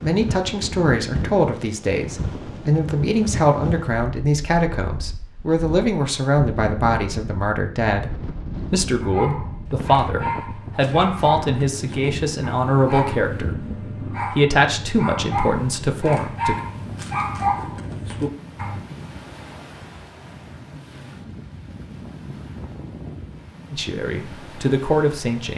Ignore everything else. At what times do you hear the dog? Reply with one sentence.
You can hear the dog from 9.0 to 18.8 s.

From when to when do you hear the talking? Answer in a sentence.
You can hear the talking from 0.0 to 16.6 s and from 23.7 to 25.5 s.